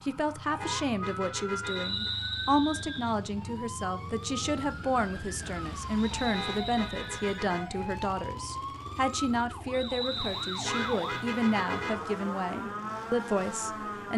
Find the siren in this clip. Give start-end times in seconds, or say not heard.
0.0-14.1.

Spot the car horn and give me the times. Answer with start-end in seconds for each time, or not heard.
0.6-2.1, 6.3-7.8, 10.6-12.2.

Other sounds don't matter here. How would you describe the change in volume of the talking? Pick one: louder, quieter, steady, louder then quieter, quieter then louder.
steady.